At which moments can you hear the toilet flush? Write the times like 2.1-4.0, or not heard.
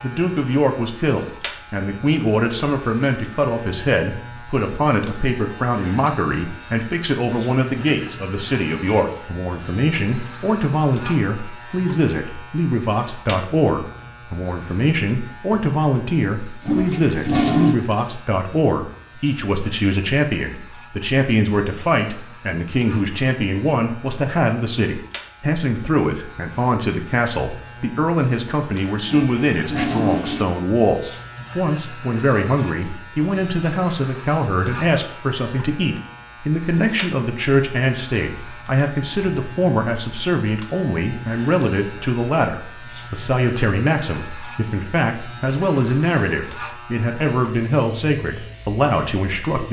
16.6-17.8, 29.1-30.4.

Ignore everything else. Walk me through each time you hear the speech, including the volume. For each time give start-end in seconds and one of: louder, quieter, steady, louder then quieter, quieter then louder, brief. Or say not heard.
0.0-49.6 steady.